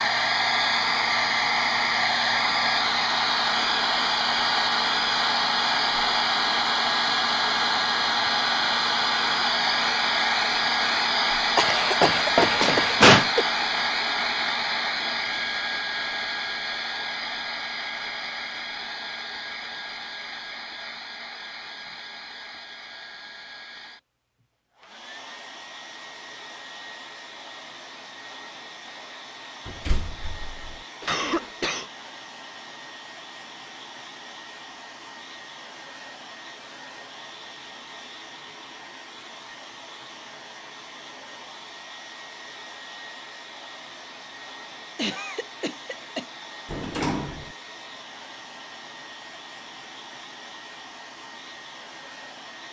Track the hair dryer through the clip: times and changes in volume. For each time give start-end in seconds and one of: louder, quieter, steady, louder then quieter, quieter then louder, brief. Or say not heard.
0.0-52.6 quieter.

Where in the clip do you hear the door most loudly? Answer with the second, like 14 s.
13 s.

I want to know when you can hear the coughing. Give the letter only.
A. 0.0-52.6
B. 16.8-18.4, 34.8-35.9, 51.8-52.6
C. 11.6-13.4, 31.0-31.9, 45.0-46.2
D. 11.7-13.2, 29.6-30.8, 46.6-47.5
C.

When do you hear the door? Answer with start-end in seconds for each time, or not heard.
11.7-13.2, 29.6-30.8, 46.6-47.5.